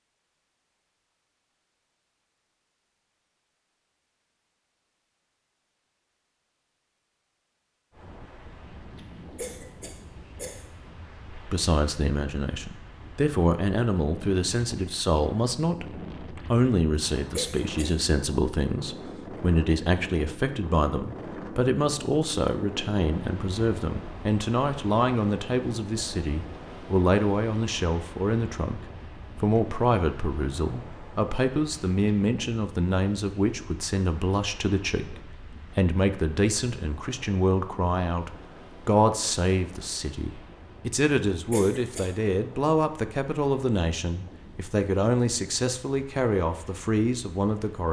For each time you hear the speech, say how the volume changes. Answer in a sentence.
The speech can be heard from 11.3 to 47.8 s, at a steady volume.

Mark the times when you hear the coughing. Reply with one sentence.
You can hear the coughing from 9.3 to 10.7 s, from 17.3 to 17.9 s and from 41.5 to 42.1 s.